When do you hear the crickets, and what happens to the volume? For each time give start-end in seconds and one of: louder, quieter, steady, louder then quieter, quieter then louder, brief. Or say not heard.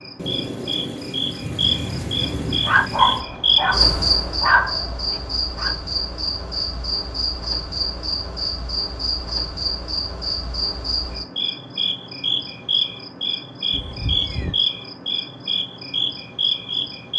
0.0-17.1 steady.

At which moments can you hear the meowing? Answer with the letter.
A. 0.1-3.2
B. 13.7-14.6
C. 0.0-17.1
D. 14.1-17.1
B.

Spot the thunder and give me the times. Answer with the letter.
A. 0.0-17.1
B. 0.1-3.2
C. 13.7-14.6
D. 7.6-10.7
B.